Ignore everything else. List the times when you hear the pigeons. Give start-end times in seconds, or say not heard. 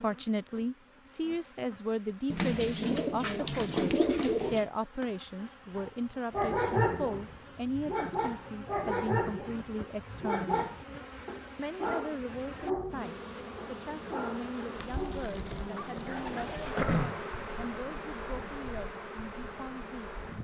2.3-4.7, 16.1-17.3.